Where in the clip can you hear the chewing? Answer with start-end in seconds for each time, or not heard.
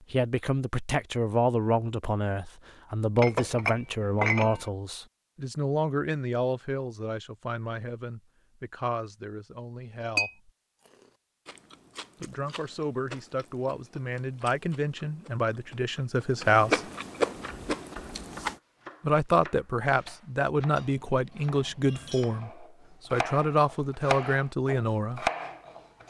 10.8-18.6.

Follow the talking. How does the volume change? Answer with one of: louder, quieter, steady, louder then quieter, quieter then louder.
quieter then louder.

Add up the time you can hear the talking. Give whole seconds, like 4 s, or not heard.
21 s.